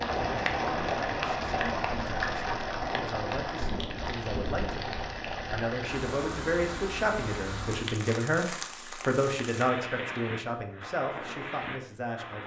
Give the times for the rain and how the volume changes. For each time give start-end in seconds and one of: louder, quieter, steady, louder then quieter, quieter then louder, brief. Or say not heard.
0.0-12.4 quieter.